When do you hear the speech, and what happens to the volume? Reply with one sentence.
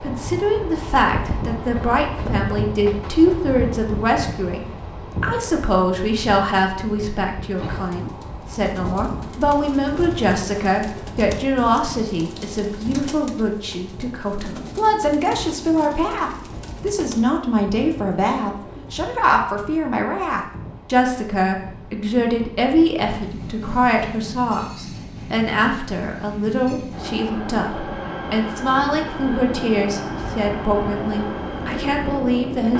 The speech can be heard from 0.0 to 32.7 s, at a steady volume.